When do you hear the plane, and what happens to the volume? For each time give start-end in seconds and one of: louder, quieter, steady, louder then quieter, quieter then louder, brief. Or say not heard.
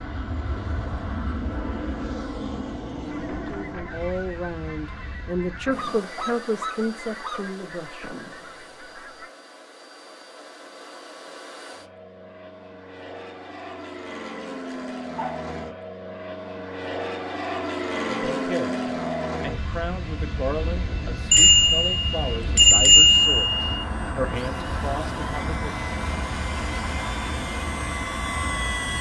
0.0-28.9 quieter then louder.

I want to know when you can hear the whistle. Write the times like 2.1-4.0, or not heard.
not heard.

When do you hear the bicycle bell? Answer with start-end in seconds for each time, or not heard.
21.3-23.6.